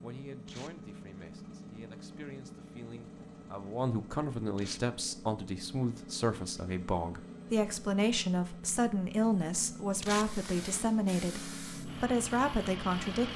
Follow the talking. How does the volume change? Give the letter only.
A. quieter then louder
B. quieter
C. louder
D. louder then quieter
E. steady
C.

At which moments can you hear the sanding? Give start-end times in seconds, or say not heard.
not heard.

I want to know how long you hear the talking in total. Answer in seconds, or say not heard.
13 s.